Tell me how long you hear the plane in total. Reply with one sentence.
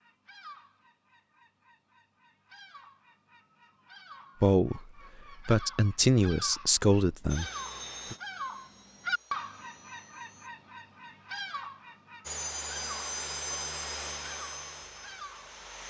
You can hear the plane for 7 seconds altogether.